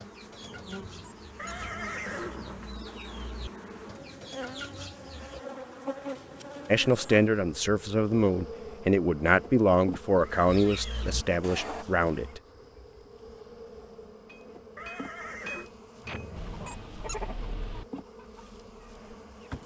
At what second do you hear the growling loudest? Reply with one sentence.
The loudest moment of the growling is at 17 seconds.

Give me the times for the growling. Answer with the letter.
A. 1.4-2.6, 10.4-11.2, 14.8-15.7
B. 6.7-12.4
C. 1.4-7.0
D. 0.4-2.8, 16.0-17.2
D.